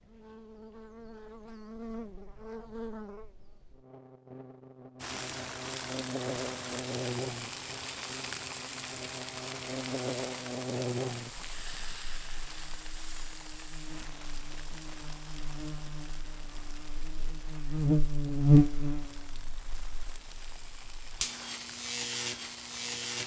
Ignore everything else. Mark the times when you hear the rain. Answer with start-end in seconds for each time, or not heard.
5.0-23.2.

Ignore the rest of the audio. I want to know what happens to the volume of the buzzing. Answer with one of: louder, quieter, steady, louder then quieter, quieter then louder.
louder.